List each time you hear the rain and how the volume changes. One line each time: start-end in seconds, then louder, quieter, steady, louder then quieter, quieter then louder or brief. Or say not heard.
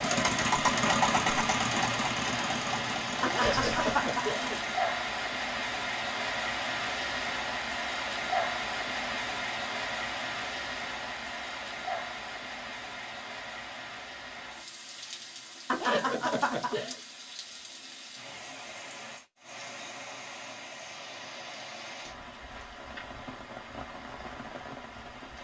0.0-25.3 quieter.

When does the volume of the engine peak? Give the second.
1 s.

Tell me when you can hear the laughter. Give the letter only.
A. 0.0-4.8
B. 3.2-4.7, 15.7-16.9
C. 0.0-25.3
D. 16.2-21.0
B.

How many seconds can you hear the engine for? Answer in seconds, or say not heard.
5 s.